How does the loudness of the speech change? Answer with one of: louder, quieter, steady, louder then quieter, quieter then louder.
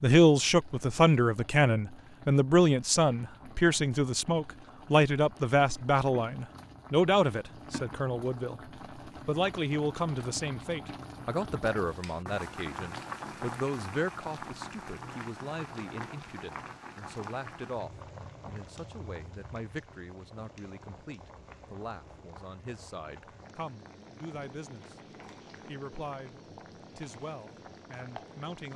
quieter.